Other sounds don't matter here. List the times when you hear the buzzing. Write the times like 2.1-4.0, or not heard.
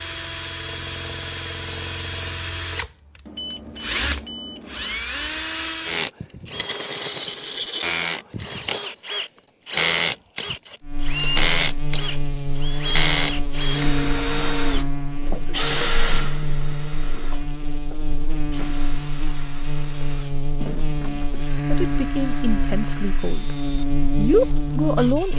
10.8-25.3.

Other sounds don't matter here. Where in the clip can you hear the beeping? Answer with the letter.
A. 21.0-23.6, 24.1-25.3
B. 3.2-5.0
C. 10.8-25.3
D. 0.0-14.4
B.